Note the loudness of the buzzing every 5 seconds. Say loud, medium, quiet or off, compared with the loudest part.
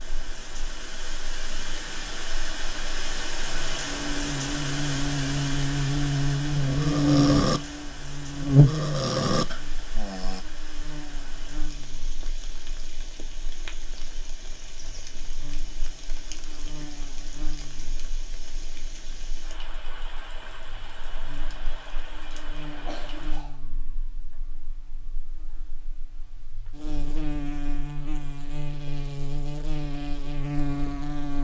quiet, loud, quiet, quiet, quiet, quiet, medium.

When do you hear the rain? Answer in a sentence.
You can hear the rain from 0.0 to 23.4 s.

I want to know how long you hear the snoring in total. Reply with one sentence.
The snoring can be heard for 4 seconds in total.